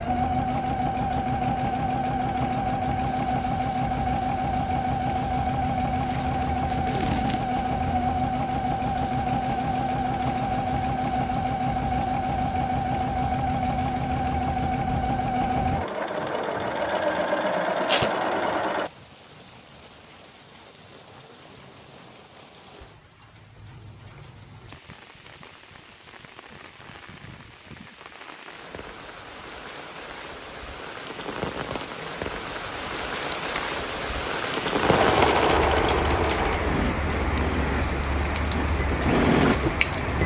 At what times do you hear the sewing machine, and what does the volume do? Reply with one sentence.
You can hear the sewing machine from 0.0 to 18.9 s, at a steady volume; and from 34.8 to 40.2 s, getting quieter then louder.